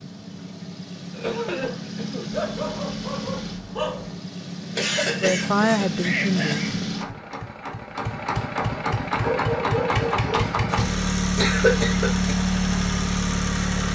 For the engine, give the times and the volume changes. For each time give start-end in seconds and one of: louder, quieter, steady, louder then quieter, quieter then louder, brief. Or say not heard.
0.0-13.8 louder.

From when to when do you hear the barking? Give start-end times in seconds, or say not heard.
2.3-4.2, 9.1-10.8.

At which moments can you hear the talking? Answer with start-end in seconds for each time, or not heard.
5.2-6.7.